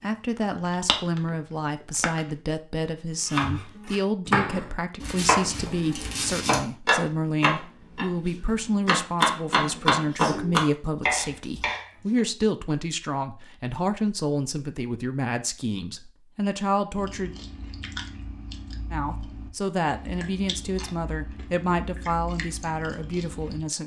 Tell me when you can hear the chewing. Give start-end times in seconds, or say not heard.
0.0-2.4, 16.9-23.6.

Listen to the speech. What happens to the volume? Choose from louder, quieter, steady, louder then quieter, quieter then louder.
steady.